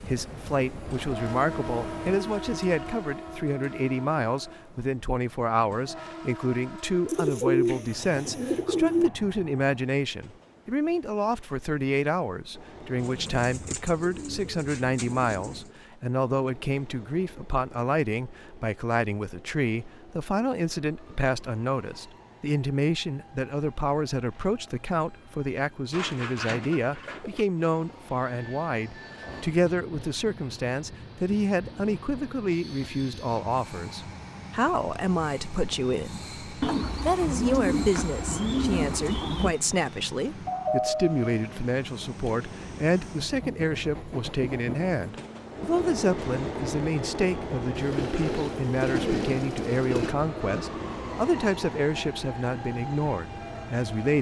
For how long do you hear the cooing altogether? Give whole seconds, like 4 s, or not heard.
12 s.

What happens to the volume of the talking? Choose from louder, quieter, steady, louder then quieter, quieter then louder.
steady.